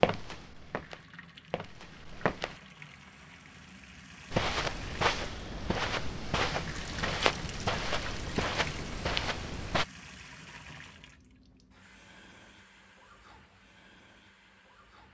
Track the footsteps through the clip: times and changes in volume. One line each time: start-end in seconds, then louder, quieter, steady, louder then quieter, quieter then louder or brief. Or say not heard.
0.0-2.5 brief
4.3-9.8 steady.